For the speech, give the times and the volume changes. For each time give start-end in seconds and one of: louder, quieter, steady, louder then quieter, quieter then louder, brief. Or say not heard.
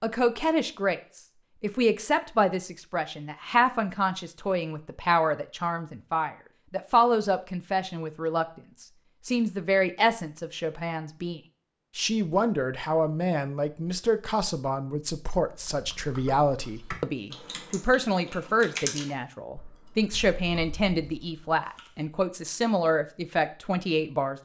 0.0-24.4 steady.